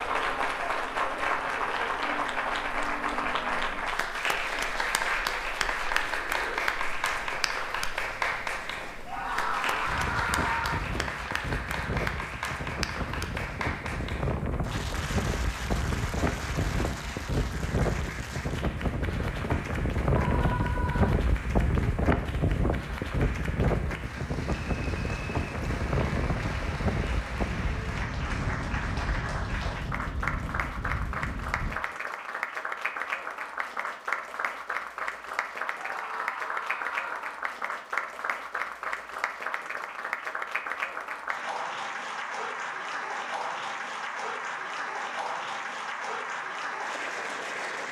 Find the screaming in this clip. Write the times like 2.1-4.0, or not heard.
9.1-10.8, 20.1-21.1, 35.8-37.3.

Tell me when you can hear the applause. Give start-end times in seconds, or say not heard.
0.0-47.8.